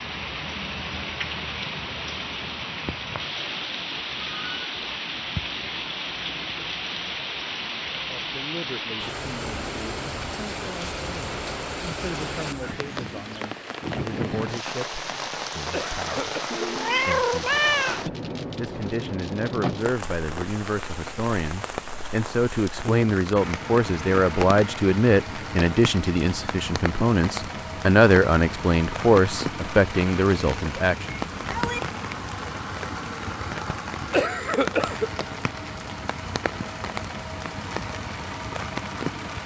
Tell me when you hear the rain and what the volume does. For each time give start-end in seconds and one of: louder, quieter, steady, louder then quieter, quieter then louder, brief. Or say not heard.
0.0-39.4 steady.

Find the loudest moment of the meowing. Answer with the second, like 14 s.
18 s.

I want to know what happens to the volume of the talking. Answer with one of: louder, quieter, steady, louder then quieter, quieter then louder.
louder.